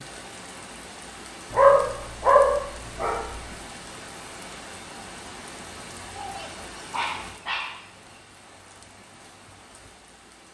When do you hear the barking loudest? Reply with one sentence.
The volume of the barking peaks at 2 seconds.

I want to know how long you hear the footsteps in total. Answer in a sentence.
You can't hear the footsteps here.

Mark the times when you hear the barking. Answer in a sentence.
You can hear the barking from 1.5 to 3.2 s and from 6.2 to 8.2 s.